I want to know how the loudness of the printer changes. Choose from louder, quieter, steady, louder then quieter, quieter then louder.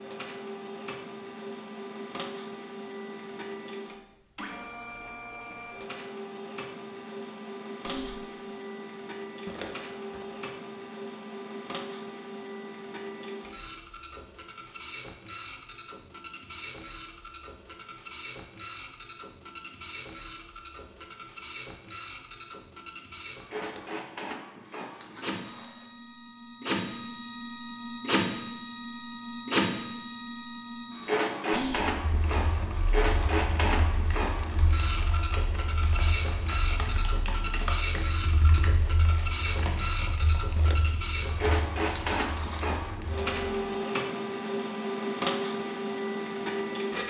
louder.